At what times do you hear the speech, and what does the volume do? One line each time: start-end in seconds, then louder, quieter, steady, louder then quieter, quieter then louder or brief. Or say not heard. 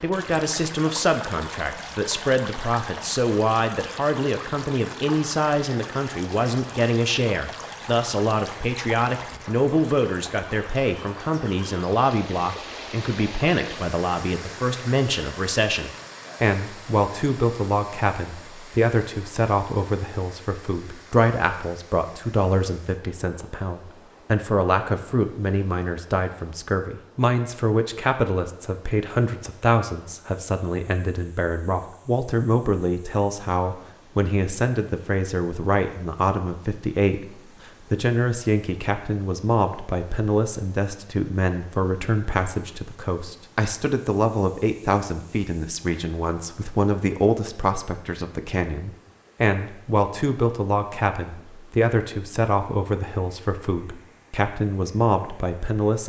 0.0-56.0 steady.